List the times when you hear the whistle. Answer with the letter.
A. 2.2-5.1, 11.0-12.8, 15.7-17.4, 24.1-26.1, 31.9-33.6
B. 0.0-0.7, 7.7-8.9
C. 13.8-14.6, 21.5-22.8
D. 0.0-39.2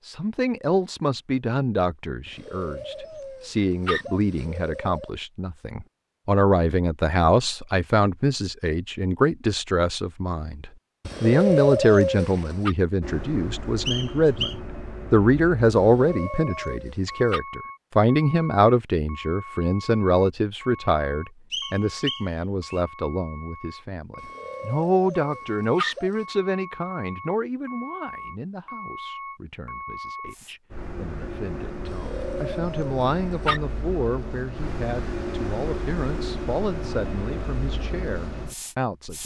C.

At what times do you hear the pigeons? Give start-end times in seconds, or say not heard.
2.2-5.1, 11.0-12.8, 15.7-17.4, 24.1-26.1, 31.9-33.6.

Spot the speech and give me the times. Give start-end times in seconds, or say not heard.
0.0-39.2.